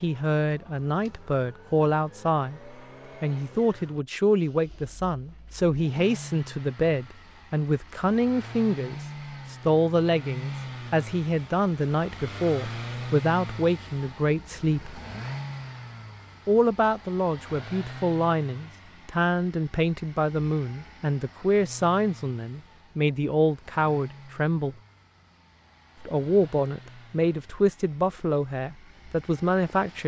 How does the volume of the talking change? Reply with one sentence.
The loudness of the talking stays about the same.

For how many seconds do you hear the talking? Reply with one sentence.
You can hear the talking for 27 seconds altogether.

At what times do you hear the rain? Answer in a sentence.
You can't hear the rain here.